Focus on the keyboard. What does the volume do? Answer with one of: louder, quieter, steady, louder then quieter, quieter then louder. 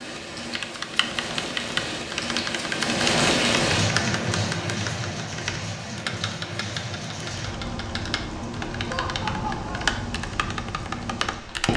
quieter then louder.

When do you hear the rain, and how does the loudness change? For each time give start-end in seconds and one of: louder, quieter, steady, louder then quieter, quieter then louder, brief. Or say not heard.
0.0-11.7 louder then quieter.